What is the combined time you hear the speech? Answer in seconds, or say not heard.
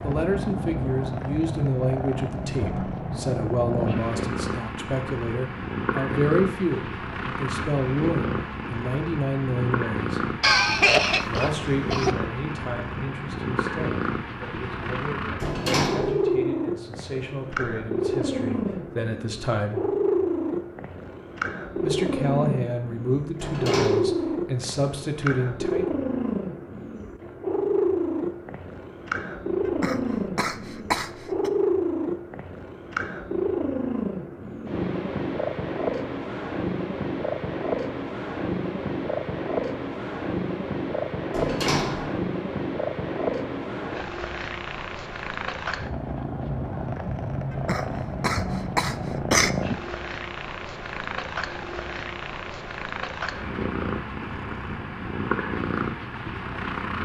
23 s.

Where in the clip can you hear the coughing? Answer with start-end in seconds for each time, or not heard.
10.4-12.1, 29.6-31.5, 47.5-49.5.